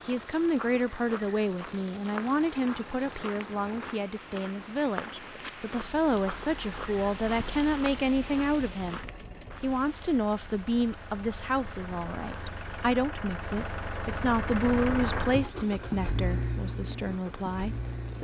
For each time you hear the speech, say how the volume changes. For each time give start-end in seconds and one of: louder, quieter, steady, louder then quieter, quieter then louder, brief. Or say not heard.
0.1-18.1 steady.